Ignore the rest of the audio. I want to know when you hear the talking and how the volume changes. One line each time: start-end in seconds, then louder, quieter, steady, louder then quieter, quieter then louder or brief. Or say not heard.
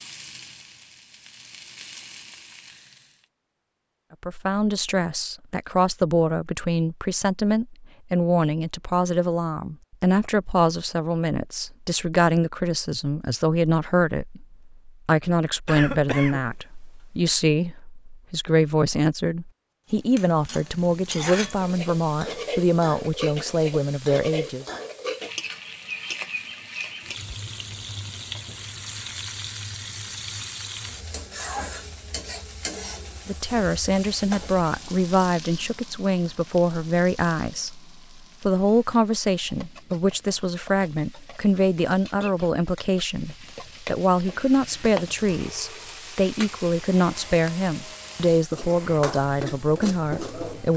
4.2-24.6 steady
33.2-50.7 steady.